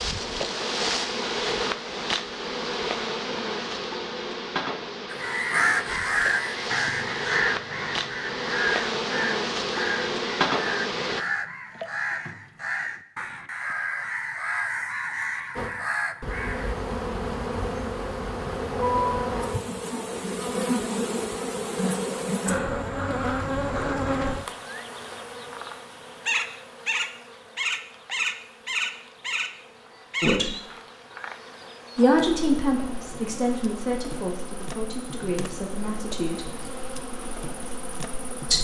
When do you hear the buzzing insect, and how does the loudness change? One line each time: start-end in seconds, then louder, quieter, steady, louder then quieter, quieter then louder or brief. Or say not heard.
0.0-11.2 quieter then louder
15.6-38.5 quieter.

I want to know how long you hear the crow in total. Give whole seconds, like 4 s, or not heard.
12 s.